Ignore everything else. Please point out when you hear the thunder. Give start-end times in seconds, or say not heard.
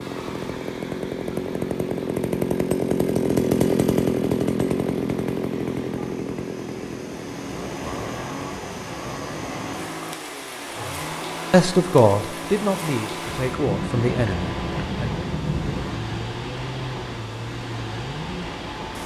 13.4-16.2.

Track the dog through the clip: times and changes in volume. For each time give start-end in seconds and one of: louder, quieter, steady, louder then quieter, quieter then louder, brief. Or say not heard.
not heard.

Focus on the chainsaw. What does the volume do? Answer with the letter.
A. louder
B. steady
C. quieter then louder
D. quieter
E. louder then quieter
D.